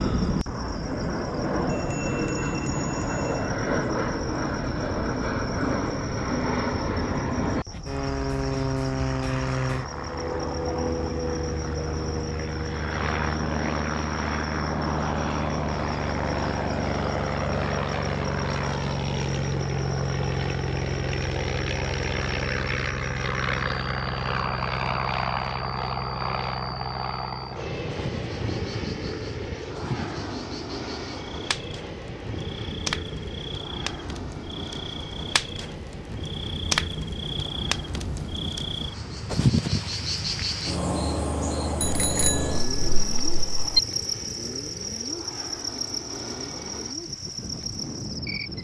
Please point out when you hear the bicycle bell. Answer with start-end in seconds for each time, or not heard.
1.6-3.5, 41.8-43.8.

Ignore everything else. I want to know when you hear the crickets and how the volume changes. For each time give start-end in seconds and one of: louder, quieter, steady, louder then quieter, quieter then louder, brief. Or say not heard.
0.0-48.5 louder.